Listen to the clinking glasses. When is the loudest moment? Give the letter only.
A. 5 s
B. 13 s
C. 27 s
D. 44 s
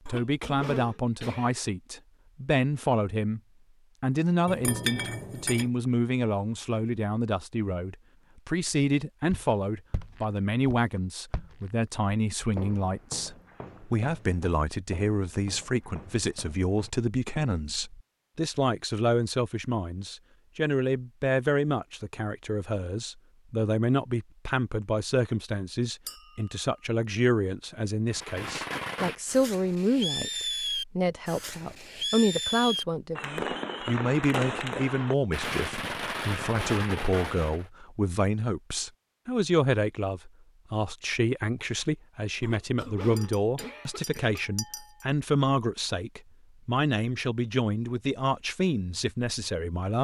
A.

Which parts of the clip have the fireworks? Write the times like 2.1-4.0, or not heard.
28.1-37.6.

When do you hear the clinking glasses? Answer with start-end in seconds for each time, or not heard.
4.5-5.7, 26.1-26.6, 43.1-45.0.